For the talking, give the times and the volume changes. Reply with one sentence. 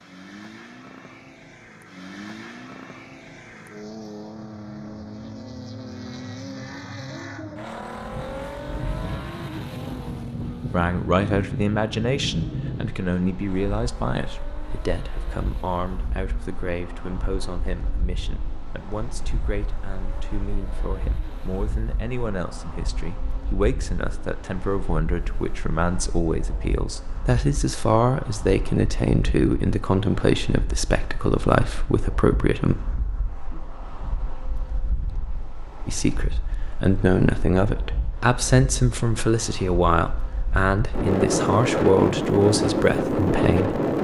You can hear the talking from 10.7 to 32.8 s, getting quieter then louder; and from 35.9 to 43.8 s, at a steady volume.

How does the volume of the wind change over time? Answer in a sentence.
The loudness of the wind goes down, then up.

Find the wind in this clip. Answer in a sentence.
The wind can be heard from 8.0 to 43.9 s.